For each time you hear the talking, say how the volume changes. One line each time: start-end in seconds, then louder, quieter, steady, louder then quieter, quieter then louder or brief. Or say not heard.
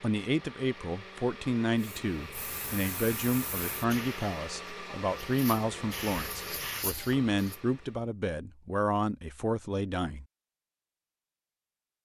0.0-10.2 steady.